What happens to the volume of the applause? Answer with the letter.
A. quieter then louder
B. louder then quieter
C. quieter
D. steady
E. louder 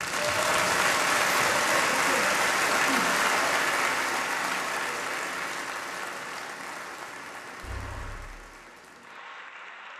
C.